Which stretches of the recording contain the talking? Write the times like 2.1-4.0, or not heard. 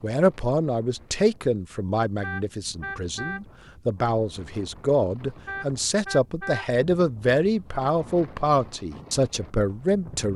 0.0-10.3.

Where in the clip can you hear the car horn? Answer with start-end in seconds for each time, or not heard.
2.2-3.4, 5.5-6.7.